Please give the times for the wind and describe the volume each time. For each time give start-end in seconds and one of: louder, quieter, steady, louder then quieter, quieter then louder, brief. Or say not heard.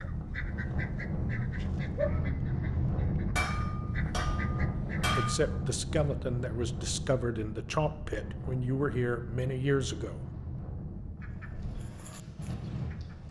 0.0-13.2 quieter.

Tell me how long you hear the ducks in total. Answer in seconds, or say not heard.
7 s.